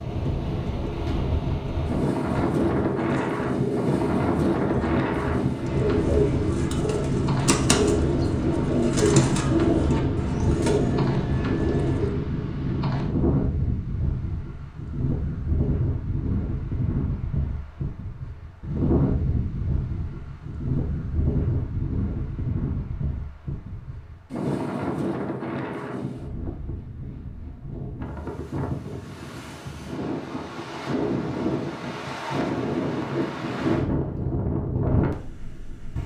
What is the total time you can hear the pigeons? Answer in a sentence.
The pigeons can be heard for 10 seconds in total.